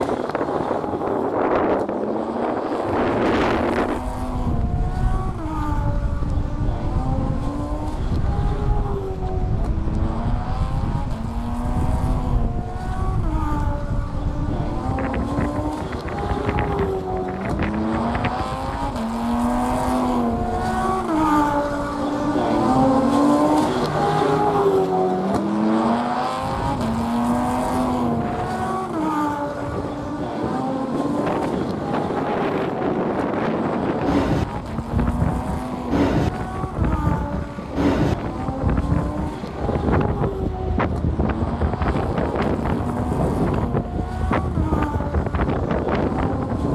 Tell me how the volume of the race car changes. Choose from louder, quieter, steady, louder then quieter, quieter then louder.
louder then quieter.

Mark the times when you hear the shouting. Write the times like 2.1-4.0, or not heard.
not heard.